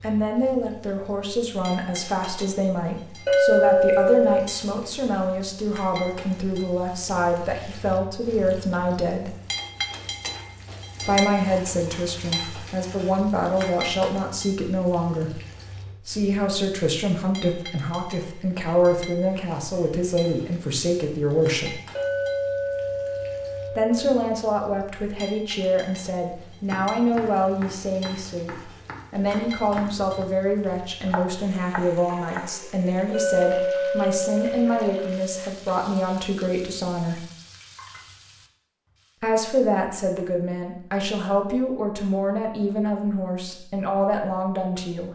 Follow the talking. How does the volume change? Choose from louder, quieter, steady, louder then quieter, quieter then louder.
steady.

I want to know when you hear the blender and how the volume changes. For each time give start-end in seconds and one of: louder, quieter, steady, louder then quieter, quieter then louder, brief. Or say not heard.
not heard.